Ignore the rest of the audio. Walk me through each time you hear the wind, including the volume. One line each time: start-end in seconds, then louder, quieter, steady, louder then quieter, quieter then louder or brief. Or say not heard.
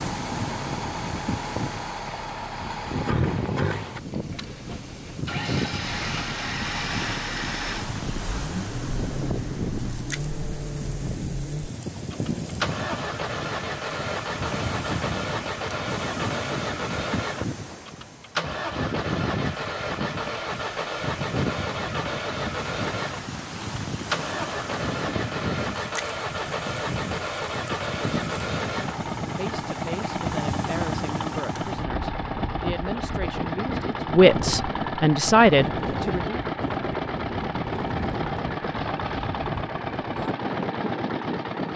0.0-41.7 steady.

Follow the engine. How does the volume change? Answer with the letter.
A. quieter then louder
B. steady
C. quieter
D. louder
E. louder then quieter
B.